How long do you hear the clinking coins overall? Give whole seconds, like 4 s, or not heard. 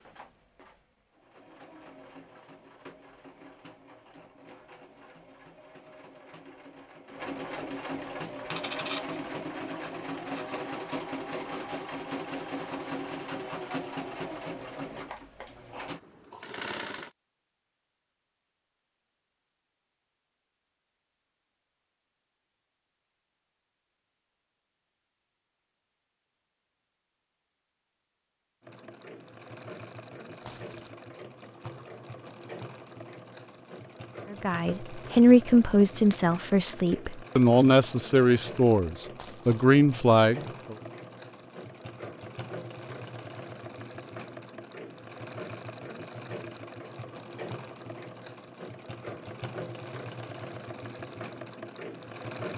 3 s.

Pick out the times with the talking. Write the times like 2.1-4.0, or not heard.
34.3-40.8.